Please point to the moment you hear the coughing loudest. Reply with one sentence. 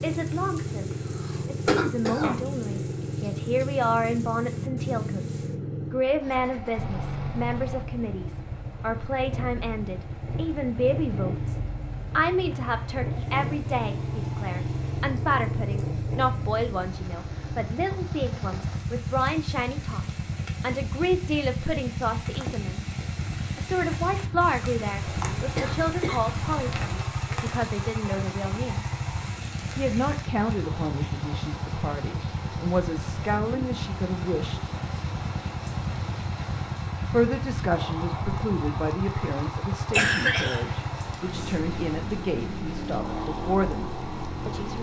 The volume of the coughing peaks at 40 seconds.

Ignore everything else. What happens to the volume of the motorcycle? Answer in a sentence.
The volume of the motorcycle stays about the same.